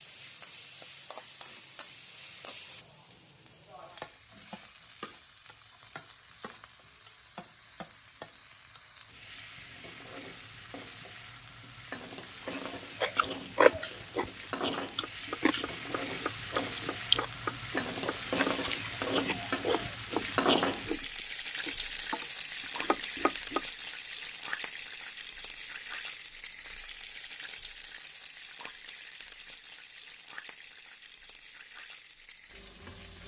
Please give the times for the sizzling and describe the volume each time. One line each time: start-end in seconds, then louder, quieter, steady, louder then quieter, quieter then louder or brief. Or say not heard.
0.0-33.2 louder then quieter.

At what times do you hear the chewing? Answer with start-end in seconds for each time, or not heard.
12.4-19.9.